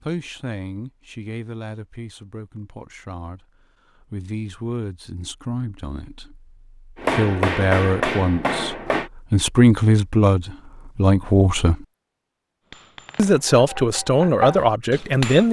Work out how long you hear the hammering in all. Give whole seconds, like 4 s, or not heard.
5 s.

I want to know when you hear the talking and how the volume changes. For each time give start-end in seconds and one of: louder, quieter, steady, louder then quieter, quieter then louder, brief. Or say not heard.
0.0-11.8 louder
13.2-15.4 brief.